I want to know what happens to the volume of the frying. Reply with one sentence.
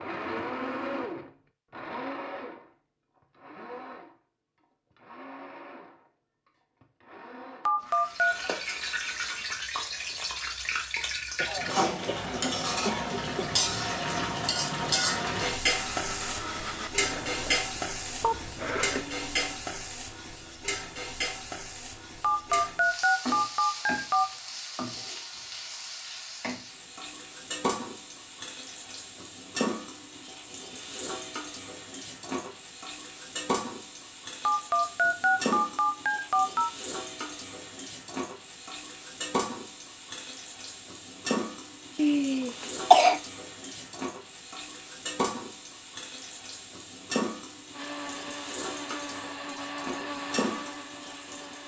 The volume of the frying goes down.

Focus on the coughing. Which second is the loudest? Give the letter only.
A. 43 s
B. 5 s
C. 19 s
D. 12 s
A.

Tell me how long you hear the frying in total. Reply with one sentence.
The frying can be heard for 44 seconds in total.